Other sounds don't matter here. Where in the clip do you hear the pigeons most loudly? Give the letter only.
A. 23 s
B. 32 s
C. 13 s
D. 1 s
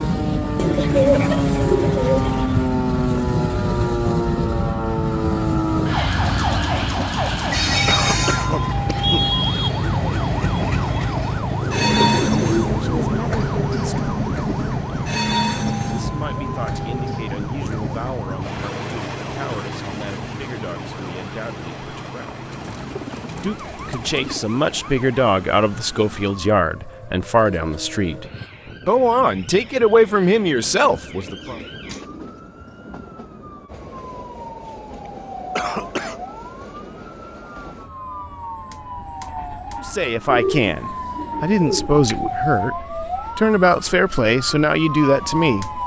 D.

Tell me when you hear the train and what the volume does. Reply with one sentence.
You can hear the train from 0.0 to 45.8 s, getting quieter.